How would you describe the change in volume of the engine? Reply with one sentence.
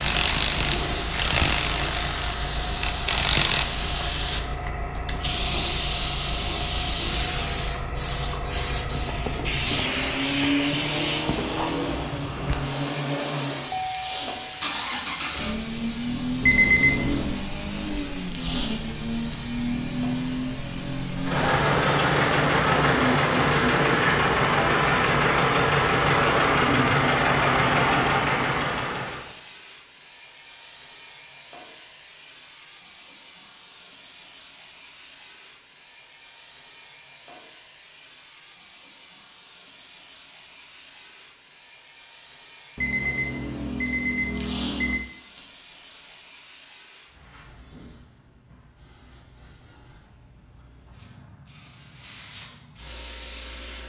The loudness of the engine goes up.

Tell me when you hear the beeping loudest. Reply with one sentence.
The loudest moment of the beeping is at 17 seconds.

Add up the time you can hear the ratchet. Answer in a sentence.
You can hear the ratchet for 4 seconds altogether.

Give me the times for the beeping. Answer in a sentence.
The beeping can be heard from 16.4 to 17.4 s and from 42.8 to 45.0 s.